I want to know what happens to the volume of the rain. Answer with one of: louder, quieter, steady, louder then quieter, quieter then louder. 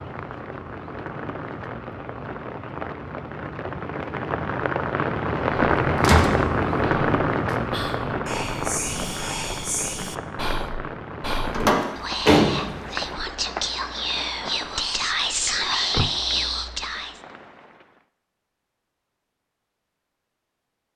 louder then quieter.